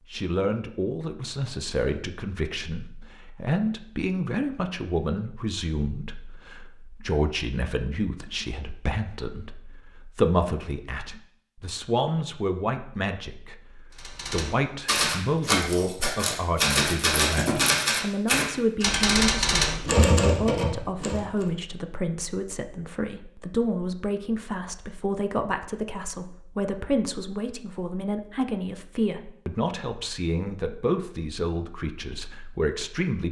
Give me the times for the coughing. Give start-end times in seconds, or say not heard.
not heard.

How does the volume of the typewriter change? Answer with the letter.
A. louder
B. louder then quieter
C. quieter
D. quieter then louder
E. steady
E.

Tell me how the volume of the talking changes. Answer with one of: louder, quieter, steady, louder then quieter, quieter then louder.
steady.